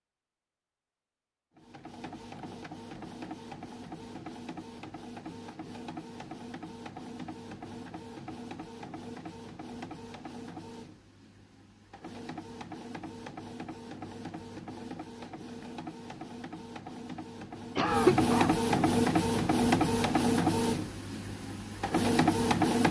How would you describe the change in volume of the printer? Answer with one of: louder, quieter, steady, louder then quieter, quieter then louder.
louder.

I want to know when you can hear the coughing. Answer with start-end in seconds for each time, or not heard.
17.8-18.5.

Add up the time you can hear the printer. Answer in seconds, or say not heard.
21 s.